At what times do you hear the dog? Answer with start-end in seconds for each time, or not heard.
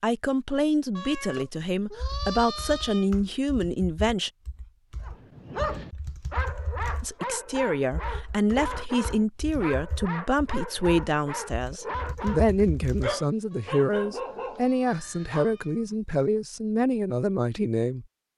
5.0-15.5.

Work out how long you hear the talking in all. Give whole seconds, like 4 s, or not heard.
15 s.